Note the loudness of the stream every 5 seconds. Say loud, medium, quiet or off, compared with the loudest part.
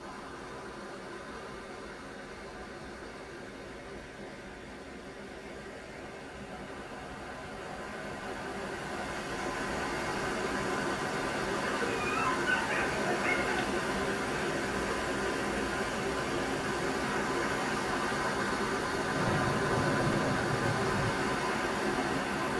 quiet, medium, loud, loud, loud.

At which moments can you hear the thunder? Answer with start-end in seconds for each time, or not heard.
19.1-21.1.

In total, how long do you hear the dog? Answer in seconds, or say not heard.
2 s.